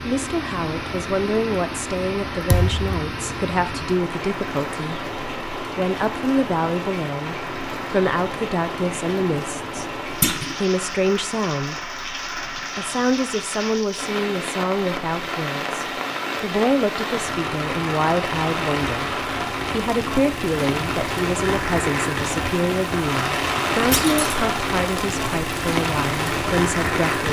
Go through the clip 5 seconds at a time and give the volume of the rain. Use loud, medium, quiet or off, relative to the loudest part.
medium, medium, medium, loud, loud, loud.